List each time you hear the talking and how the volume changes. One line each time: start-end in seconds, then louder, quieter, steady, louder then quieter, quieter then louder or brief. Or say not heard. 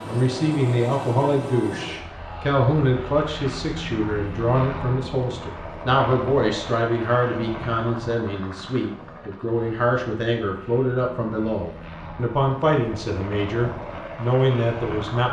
0.0-15.2 steady.